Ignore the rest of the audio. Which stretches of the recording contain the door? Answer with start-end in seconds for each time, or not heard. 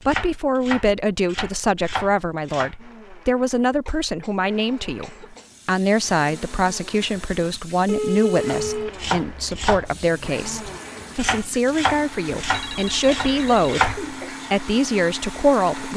not heard.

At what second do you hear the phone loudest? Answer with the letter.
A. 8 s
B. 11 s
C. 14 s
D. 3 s
A.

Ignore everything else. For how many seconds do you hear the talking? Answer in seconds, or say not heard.
16 s.